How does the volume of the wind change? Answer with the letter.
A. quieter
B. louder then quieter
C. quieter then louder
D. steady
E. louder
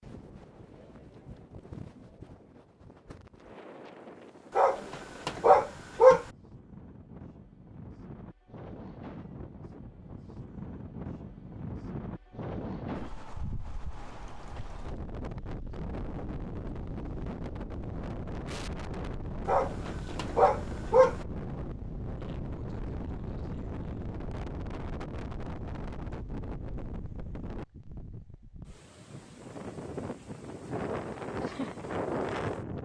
E.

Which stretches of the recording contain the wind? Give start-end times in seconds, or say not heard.
0.0-32.8.